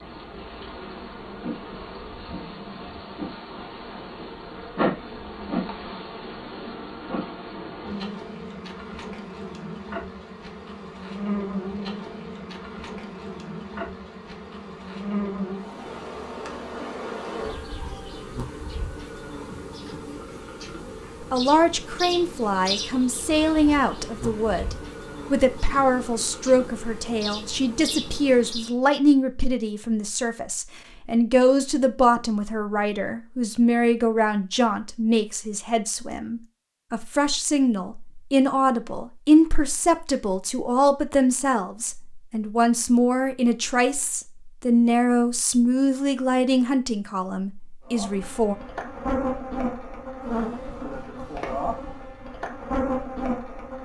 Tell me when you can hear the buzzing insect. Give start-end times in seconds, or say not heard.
0.0-28.8, 47.9-53.7.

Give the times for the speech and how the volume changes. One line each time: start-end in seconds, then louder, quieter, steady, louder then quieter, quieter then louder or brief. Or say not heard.
21.3-48.5 steady.